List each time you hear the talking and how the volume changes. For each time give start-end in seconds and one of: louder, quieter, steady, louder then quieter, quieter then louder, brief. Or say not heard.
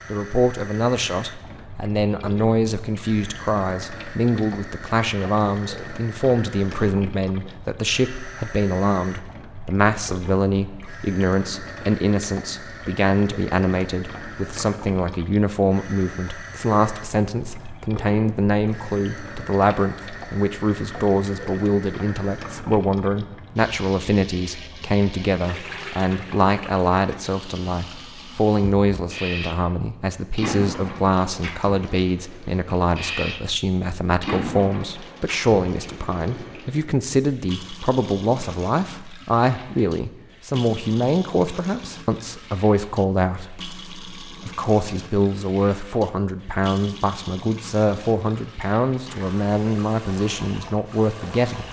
0.1-51.6 steady.